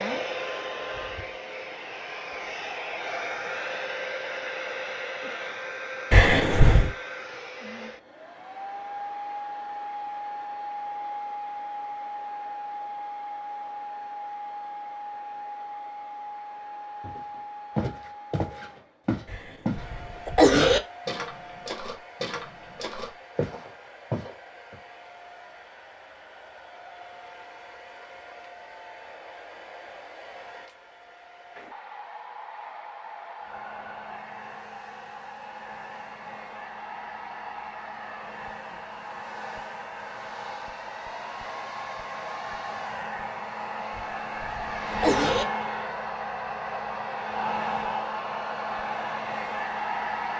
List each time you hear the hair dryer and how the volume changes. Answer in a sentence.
The hair dryer can be heard from 0.0 to 50.3 s, getting quieter then louder.